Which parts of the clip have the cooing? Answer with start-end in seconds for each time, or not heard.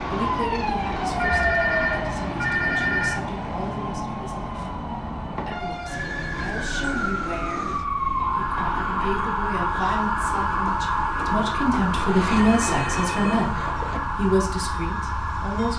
not heard.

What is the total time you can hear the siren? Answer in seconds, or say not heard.
16 s.